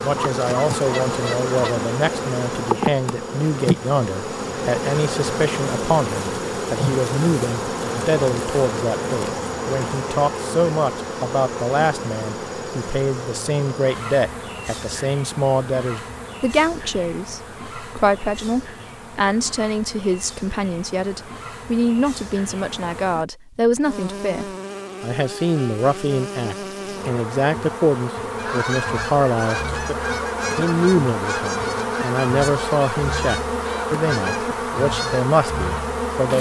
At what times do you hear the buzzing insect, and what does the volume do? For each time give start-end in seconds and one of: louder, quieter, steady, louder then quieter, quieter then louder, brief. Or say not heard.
0.0-36.3 quieter then louder.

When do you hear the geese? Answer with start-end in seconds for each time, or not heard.
0.0-1.9, 28.4-35.8.